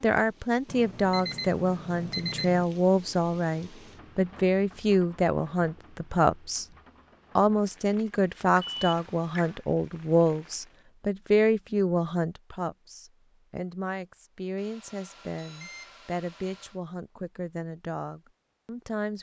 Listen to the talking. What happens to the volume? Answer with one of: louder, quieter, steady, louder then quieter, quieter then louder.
quieter.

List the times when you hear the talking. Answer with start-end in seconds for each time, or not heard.
0.0-6.7, 7.3-19.1.